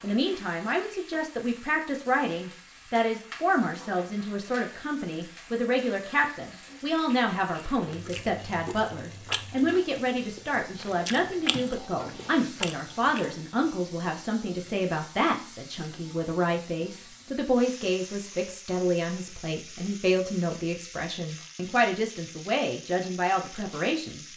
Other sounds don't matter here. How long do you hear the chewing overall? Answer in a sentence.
The chewing can be heard for 6 seconds in total.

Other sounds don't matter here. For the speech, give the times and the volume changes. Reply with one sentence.
You can hear the speech from 0.0 to 24.3 s, at a steady volume.